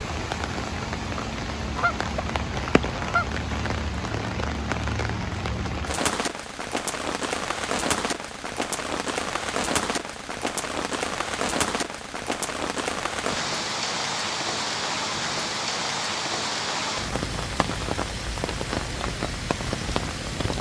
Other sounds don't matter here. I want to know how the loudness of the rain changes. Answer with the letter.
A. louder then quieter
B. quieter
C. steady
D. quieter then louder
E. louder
C.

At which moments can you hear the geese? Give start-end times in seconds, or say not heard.
1.8-3.4.